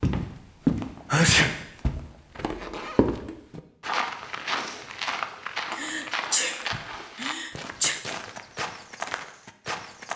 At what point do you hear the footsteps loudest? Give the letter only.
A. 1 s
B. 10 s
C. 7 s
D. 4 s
A.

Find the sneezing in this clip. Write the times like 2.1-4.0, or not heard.
1.1-1.6, 5.7-8.0.